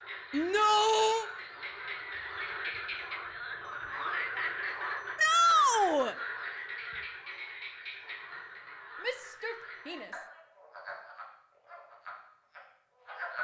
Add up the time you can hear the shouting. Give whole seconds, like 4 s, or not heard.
3 s.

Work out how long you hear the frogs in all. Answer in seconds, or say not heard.
13 s.